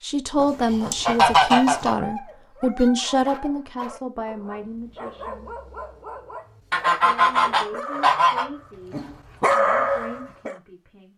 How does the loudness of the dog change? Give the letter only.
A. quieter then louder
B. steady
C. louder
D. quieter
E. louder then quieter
C.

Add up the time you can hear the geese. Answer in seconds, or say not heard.
3 s.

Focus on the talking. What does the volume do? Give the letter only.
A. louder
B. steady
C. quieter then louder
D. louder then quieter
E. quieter
E.